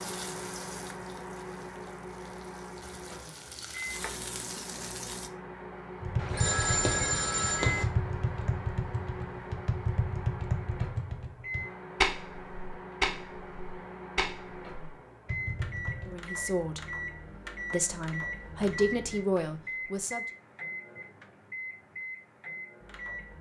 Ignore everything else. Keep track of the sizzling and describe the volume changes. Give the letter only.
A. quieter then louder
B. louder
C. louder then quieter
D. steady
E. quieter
A.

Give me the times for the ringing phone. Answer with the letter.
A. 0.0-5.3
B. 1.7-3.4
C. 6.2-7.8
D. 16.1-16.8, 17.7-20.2
C.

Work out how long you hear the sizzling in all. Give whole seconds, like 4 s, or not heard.
5 s.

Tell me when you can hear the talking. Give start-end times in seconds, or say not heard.
16.1-16.8, 17.7-20.2.